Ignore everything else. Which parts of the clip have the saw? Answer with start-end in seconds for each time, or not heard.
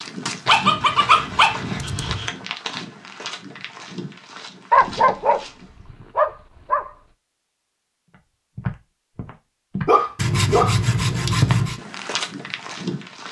0.8-2.4, 10.2-11.8.